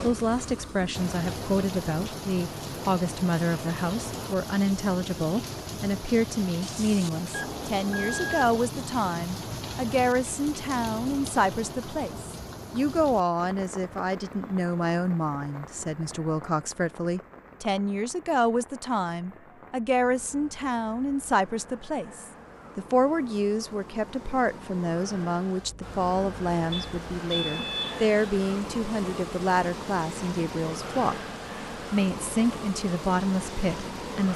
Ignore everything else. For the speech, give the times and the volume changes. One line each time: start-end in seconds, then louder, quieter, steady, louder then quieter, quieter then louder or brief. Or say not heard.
0.0-31.2 steady
31.9-34.3 brief.